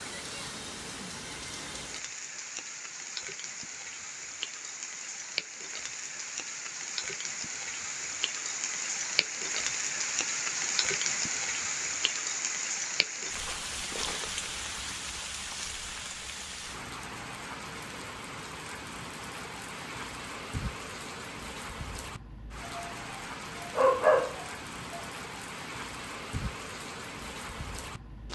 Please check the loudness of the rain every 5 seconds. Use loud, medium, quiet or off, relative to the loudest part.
medium, loud, loud, medium, medium, medium.